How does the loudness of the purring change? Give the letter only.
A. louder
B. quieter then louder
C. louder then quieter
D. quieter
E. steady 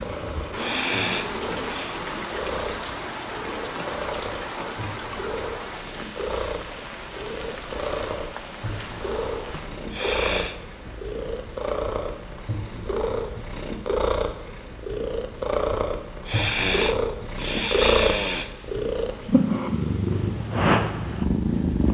A.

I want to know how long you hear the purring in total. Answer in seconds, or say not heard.
22 s.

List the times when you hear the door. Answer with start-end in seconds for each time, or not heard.
not heard.